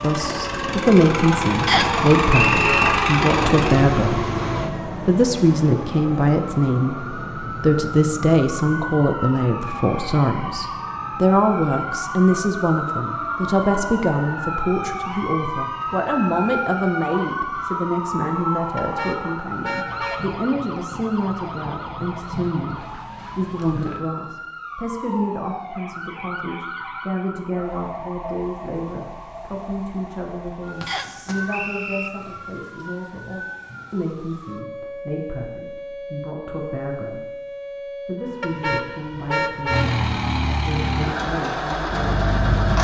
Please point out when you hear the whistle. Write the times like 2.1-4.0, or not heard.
1.6-2.9, 30.9-32.1.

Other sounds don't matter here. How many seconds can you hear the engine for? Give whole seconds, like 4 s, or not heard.
8 s.